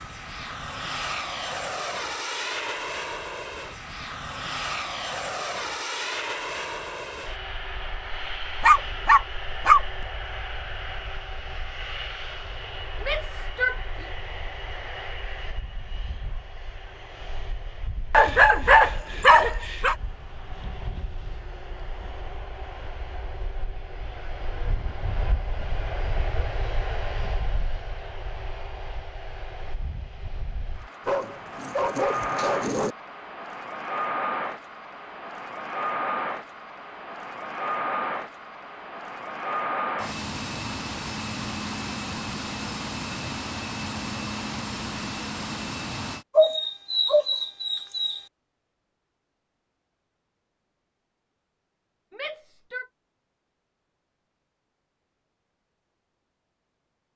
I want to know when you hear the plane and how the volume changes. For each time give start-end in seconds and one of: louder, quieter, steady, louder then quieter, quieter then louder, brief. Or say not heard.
0.0-46.2 quieter then louder.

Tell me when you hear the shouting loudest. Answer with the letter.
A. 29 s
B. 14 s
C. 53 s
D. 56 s
B.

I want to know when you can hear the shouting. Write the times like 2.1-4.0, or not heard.
13.0-14.1, 52.1-52.9.